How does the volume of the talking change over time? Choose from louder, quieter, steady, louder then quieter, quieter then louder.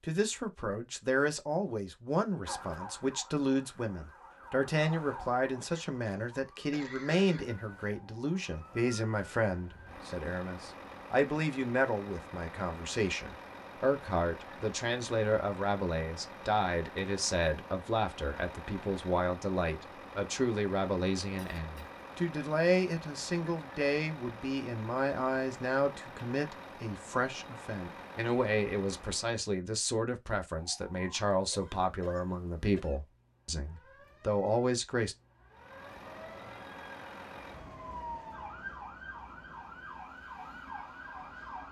steady.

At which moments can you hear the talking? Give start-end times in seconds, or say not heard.
0.0-35.1.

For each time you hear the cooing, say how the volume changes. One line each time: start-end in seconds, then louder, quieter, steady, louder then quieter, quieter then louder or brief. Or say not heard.
not heard.